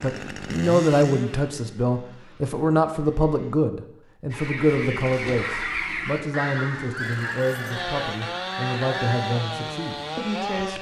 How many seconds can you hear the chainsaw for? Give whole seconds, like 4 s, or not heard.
7 s.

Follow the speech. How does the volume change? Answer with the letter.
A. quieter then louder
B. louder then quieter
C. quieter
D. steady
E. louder
C.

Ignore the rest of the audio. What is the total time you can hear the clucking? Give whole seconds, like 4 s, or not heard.
5 s.